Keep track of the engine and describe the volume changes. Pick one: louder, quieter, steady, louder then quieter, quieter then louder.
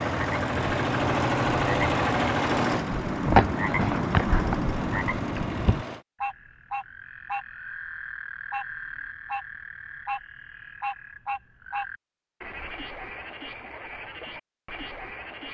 quieter.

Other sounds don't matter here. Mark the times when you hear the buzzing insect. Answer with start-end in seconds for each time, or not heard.
not heard.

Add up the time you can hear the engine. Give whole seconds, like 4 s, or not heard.
6 s.